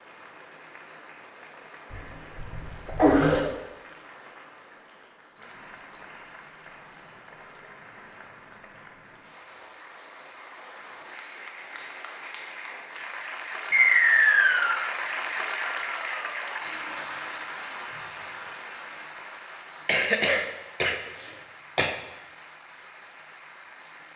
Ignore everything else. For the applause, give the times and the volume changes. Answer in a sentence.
The applause can be heard from 0.0 to 24.1 s, getting louder then quieter.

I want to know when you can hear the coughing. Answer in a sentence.
You can hear the coughing from 1.9 to 3.4 s and from 19.9 to 21.9 s.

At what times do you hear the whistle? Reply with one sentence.
You can hear the whistle from 13.7 to 14.8 s.